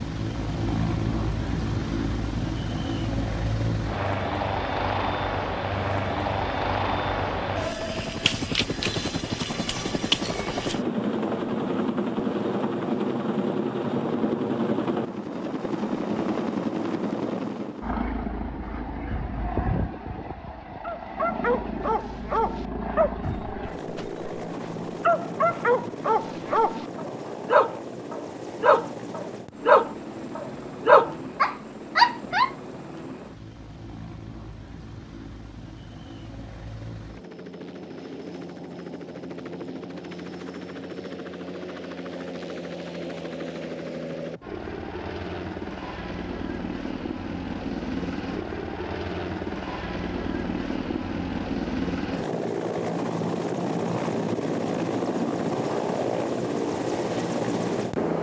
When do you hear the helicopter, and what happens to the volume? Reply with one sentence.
You can hear the helicopter from 0.0 to 58.1 s, getting quieter then louder.